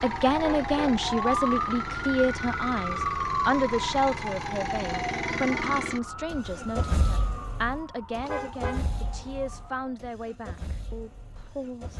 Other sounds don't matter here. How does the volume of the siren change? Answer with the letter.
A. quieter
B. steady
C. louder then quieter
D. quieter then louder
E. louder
A.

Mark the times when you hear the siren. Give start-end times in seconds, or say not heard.
0.0-10.1.